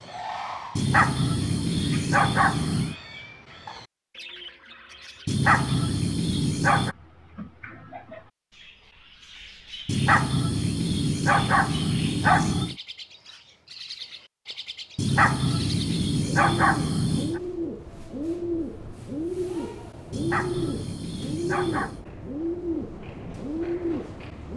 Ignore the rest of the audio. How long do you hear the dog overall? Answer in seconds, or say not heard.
11 s.